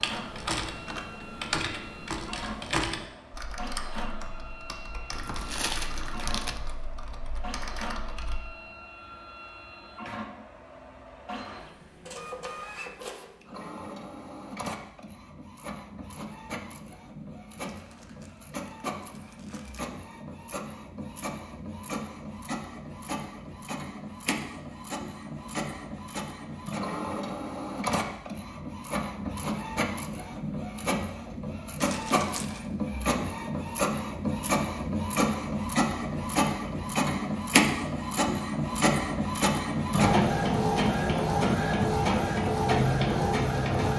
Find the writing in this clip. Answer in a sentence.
You can't hear the writing here.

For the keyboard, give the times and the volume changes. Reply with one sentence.
You can hear the keyboard from 0.0 to 8.4 s, getting quieter.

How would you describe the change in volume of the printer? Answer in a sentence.
The loudness of the printer goes up.